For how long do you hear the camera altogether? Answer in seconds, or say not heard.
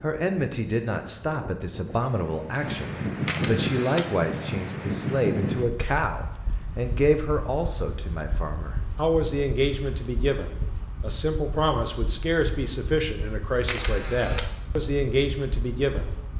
2 s.